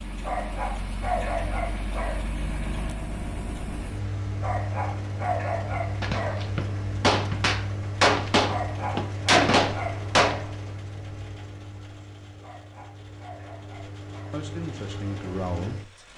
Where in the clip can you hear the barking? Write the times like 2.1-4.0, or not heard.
0.2-2.2, 4.4-6.5, 8.4-10.5, 12.4-14.4.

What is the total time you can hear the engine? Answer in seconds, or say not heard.
16 s.